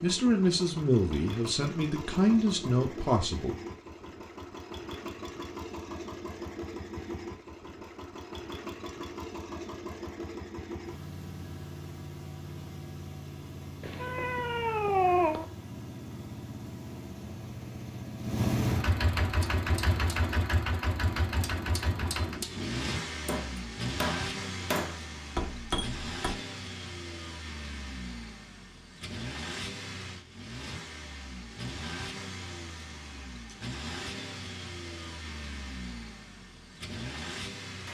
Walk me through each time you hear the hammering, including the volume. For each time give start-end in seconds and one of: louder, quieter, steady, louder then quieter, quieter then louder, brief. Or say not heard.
19.3-26.4 louder.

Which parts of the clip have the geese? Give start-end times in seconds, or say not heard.
not heard.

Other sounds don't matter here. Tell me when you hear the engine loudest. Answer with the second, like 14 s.
19 s.